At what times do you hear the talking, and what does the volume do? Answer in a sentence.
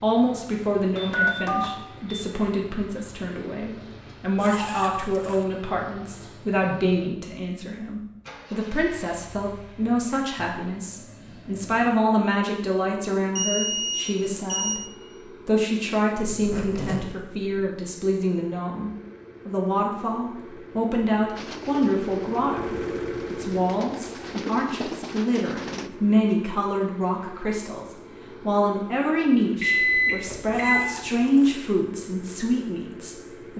The talking can be heard from 0.0 to 33.5 s, at a steady volume.